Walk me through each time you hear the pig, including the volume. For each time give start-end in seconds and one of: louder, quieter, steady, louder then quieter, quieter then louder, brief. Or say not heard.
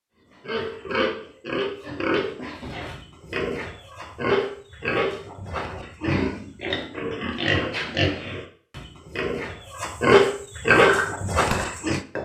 0.5-12.0 louder.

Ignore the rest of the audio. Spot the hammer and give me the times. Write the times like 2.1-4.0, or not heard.
10.7-12.2.